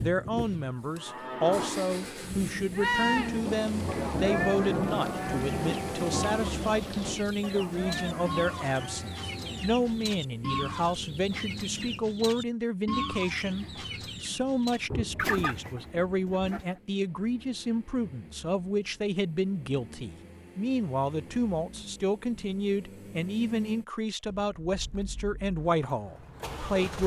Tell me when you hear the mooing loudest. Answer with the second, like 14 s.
3 s.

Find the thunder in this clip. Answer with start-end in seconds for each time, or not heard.
3.5-7.2, 14.9-16.6.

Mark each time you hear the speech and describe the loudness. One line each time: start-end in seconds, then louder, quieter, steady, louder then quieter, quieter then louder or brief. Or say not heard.
0.0-27.0 steady.